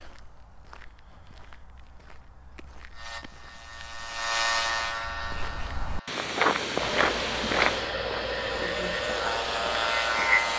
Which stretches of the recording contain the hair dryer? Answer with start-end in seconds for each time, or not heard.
6.8-10.5.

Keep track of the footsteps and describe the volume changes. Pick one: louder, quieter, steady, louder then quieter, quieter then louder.
louder then quieter.